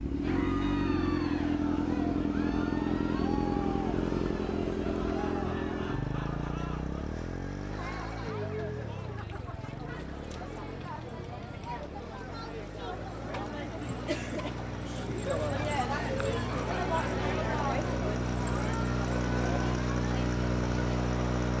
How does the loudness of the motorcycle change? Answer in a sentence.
The loudness of the motorcycle goes down, then up.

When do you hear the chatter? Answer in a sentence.
You can hear the chatter from 0.1 to 21.5 s.